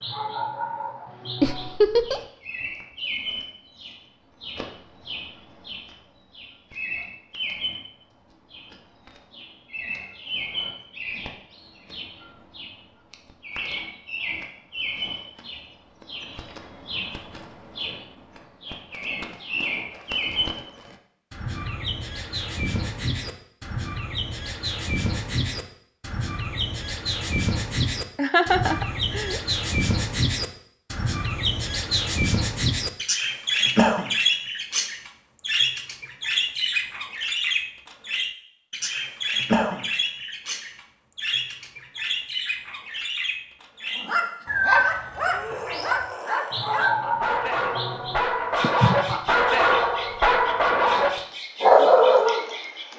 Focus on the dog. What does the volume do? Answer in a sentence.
The loudness of the dog goes up.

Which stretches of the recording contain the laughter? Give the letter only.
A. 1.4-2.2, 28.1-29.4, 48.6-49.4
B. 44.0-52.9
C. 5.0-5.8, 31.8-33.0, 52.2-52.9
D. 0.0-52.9
A.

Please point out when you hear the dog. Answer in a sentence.
You can hear the dog from 44.0 to 52.9 s.